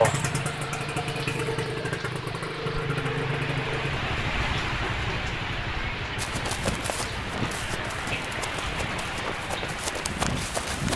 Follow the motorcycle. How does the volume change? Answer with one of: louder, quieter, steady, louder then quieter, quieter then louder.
quieter.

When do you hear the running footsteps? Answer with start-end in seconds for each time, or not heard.
6.2-10.9.